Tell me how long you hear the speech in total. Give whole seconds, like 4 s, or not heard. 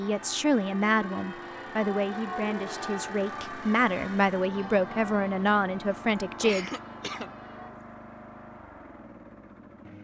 7 s.